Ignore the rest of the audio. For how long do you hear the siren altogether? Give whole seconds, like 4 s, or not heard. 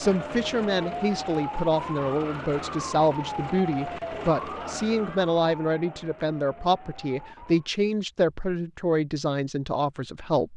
8 s.